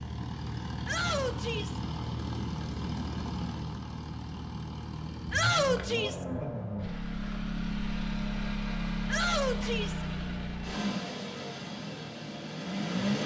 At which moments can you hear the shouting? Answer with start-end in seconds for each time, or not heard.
0.8-1.8, 5.3-6.2, 9.1-10.0.